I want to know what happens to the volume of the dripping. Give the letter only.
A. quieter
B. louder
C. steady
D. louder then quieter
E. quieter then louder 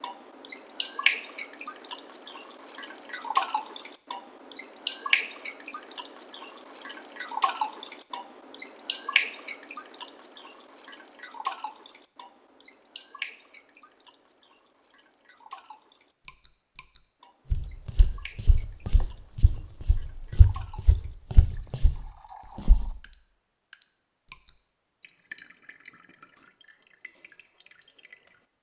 A.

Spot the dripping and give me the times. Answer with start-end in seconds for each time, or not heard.
0.0-28.4.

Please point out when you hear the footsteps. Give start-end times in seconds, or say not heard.
17.5-22.9.